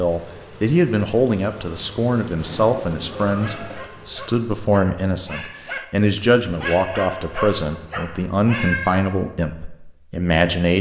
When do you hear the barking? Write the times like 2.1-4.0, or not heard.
3.4-8.8.